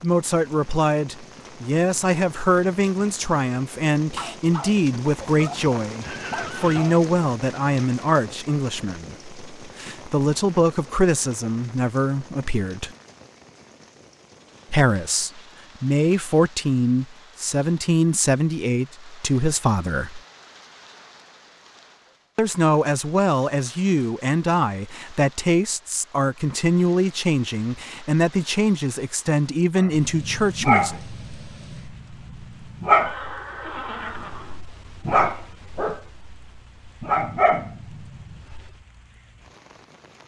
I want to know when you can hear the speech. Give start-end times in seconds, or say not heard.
0.0-12.9, 14.7-20.2, 22.4-31.0.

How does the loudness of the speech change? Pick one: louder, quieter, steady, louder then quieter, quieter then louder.
steady.